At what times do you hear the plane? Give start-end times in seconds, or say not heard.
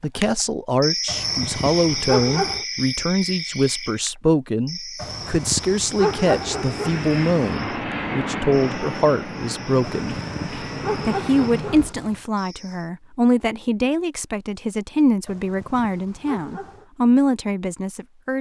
6.0-11.9.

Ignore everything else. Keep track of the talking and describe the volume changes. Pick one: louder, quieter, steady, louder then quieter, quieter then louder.
steady.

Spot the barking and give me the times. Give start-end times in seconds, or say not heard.
1.1-2.6, 5.0-7.5, 9.8-12.2, 15.2-16.9.